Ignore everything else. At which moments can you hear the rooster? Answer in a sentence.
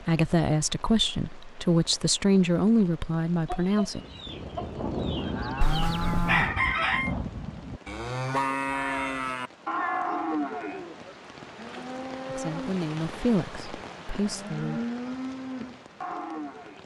You can hear the rooster from 3.5 to 7.2 s.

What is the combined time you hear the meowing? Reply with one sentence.
You can hear the meowing for 2 seconds altogether.